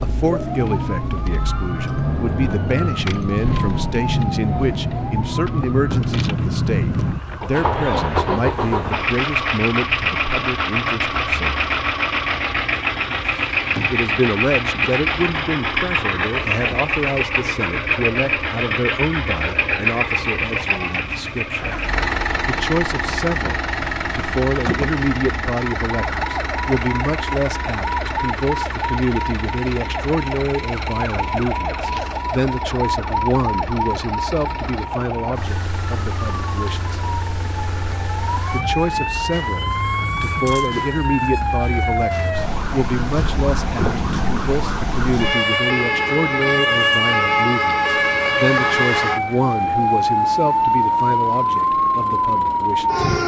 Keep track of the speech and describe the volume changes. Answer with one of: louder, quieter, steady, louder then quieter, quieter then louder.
steady.